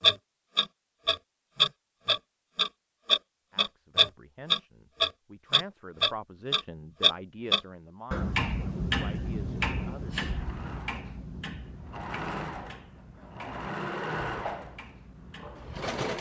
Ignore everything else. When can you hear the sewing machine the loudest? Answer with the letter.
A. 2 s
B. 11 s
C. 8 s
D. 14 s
D.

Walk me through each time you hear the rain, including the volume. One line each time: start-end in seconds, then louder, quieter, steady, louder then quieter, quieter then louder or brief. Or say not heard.
not heard.